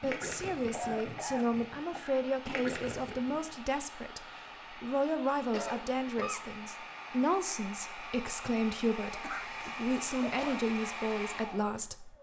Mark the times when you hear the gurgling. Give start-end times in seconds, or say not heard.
0.0-3.5.